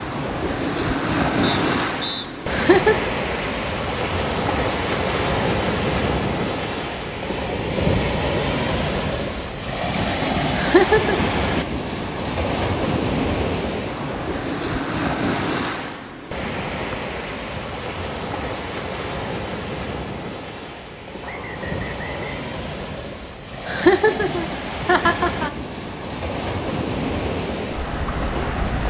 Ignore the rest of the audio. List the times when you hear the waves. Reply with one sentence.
You can hear the waves from 0.0 to 28.8 s.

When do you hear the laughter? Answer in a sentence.
You can hear the laughter from 2.5 to 3.1 s, from 10.6 to 11.2 s and from 23.6 to 25.5 s.